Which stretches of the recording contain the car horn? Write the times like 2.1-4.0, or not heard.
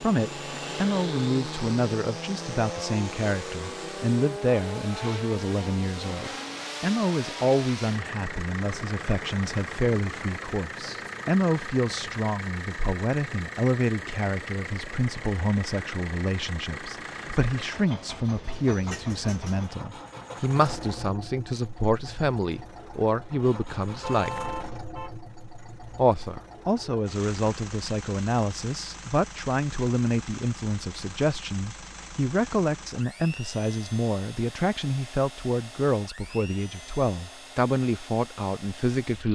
23.9-25.2.